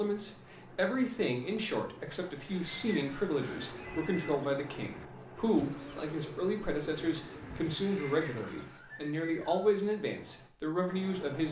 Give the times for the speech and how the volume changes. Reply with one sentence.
You can hear the speech from 0.0 to 11.4 s, at a steady volume.